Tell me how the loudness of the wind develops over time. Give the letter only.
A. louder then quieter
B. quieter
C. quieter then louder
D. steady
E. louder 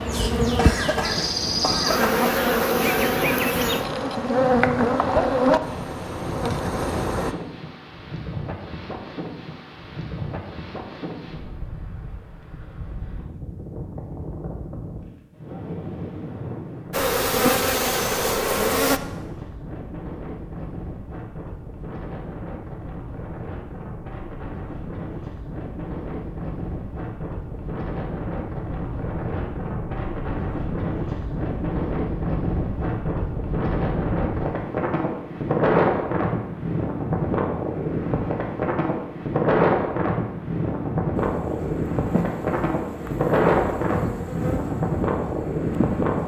E.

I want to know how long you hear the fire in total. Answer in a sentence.
You can't hear the fire here.